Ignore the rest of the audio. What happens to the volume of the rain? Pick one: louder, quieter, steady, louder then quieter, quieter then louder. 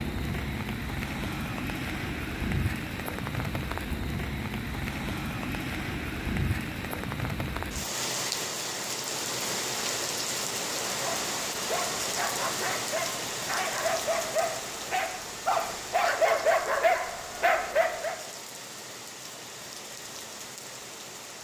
quieter.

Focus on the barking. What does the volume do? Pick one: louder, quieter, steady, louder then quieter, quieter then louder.
louder.